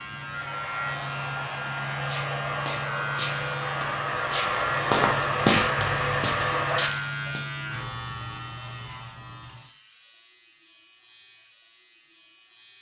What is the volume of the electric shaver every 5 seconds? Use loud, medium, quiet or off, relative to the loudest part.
loud, loud, quiet.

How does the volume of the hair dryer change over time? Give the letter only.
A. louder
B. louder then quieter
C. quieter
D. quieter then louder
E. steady
A.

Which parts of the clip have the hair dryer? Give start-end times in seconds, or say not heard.
0.0-6.9.